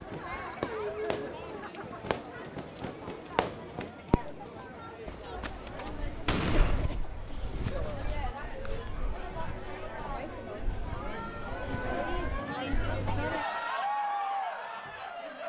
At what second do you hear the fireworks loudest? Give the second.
6 s.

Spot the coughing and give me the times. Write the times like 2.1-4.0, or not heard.
not heard.